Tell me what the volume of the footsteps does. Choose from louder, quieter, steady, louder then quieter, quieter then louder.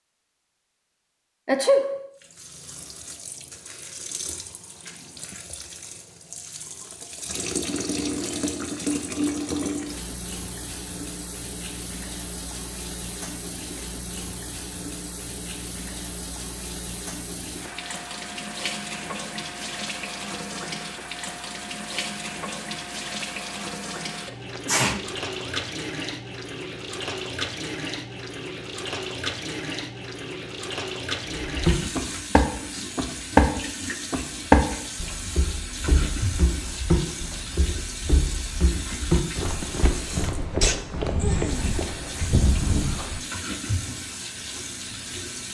quieter.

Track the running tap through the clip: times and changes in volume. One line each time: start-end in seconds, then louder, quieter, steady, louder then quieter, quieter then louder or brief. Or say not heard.
2.2-45.4 steady.